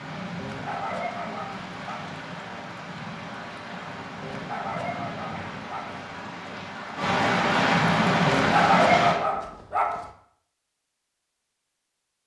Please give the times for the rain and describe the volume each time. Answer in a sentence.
You can hear the rain from 0.0 to 9.2 s, getting louder.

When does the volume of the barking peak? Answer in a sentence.
The volume of the barking peaks at 9 seconds.